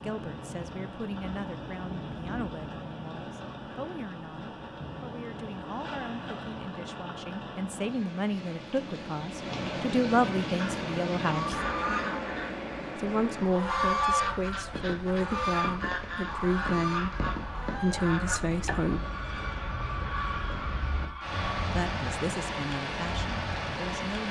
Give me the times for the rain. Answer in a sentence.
You can hear the rain from 0.0 to 24.2 s.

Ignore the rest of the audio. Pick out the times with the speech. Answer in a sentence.
You can hear the speech from 0.0 to 11.6 s, from 12.9 to 19.1 s and from 21.6 to 24.2 s.